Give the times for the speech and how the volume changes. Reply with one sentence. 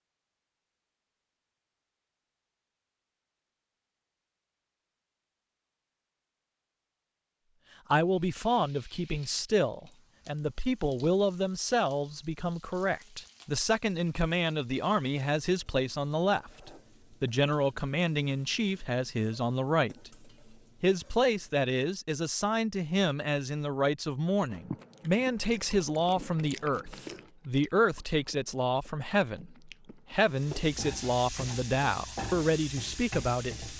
You can hear the speech from 7.9 to 20.1 s, at a steady volume; and from 20.8 to 33.7 s, at a steady volume.